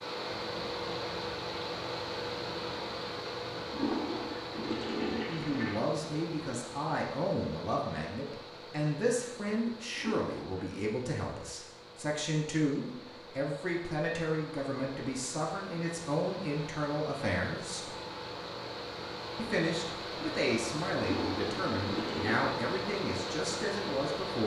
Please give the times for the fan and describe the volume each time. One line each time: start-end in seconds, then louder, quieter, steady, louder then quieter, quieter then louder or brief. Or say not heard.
0.0-24.4 quieter then louder.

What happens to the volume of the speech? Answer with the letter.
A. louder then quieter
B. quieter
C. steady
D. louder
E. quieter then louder
C.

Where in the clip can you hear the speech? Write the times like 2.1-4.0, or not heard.
5.2-17.9, 19.4-24.4.